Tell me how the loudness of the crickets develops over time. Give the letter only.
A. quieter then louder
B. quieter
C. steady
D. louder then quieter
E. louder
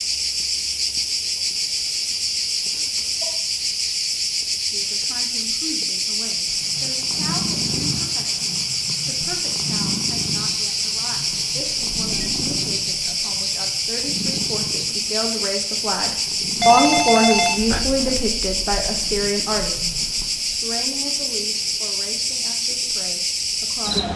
C.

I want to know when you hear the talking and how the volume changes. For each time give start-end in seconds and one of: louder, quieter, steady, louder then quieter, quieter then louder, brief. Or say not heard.
4.5-24.1 louder then quieter.